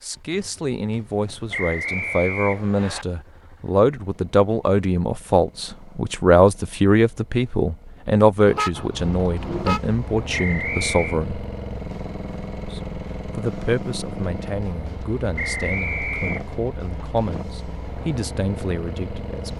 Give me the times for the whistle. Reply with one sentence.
The whistle can be heard from 1.5 to 3.0 s, from 10.3 to 11.2 s and from 15.3 to 16.4 s.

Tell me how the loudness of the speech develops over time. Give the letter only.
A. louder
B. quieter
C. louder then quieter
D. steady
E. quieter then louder
C.